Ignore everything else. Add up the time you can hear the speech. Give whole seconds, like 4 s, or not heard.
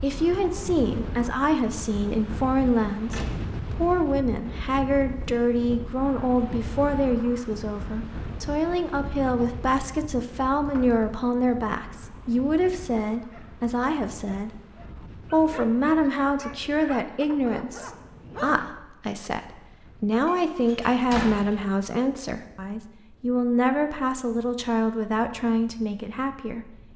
27 s.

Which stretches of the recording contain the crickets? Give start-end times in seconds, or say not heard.
not heard.